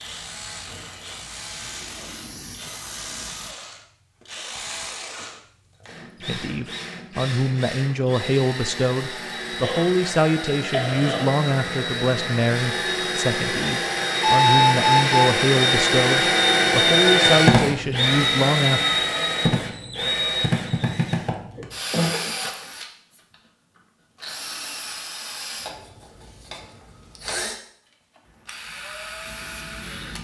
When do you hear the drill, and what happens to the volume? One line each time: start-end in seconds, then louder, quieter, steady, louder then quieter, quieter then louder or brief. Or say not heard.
0.0-30.1 louder then quieter.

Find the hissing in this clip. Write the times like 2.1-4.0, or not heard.
0.0-3.5, 28.2-30.1.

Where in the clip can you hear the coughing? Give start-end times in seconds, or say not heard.
9.6-11.3, 21.6-22.3.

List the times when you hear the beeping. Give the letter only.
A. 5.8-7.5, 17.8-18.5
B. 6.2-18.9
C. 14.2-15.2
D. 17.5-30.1
C.